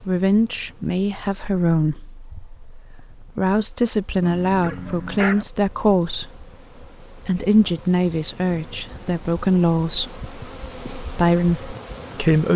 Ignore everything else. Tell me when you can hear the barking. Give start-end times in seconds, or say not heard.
4.2-5.5.